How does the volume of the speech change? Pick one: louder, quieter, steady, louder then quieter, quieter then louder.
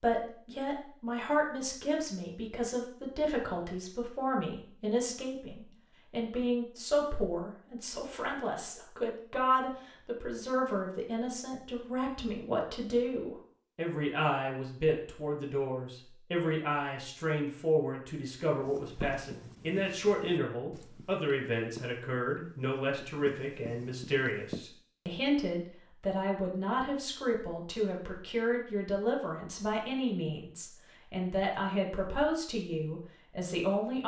steady.